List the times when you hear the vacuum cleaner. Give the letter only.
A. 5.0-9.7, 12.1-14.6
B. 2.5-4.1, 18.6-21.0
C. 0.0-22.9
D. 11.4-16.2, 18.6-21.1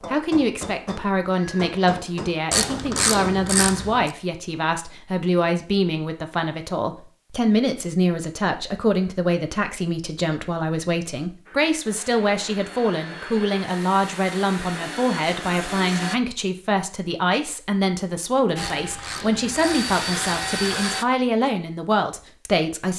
D.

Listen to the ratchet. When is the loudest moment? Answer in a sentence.
The loudest moment of the ratchet is at 3 seconds.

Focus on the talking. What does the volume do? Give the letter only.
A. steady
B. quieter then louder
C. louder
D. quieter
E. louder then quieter
A.